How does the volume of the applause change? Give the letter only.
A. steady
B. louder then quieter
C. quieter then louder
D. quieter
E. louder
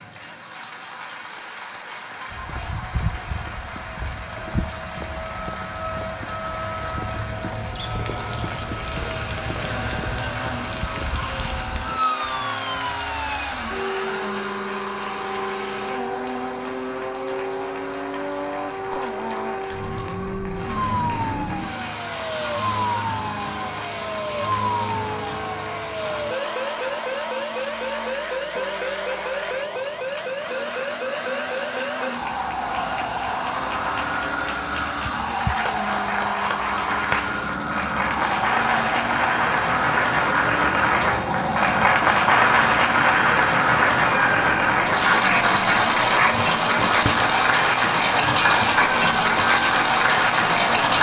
E.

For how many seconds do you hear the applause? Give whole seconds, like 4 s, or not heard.
51 s.